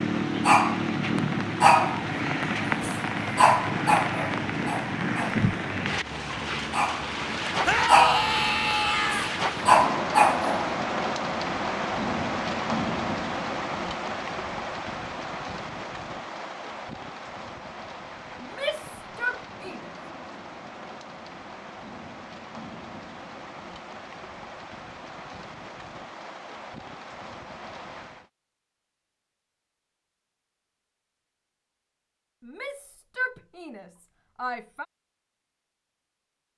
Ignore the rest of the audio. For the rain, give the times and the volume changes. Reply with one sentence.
You can hear the rain from 0.0 to 28.3 s, getting quieter.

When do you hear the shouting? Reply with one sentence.
The shouting can be heard from 7.7 to 9.3 s, from 18.4 to 19.9 s and from 32.4 to 34.9 s.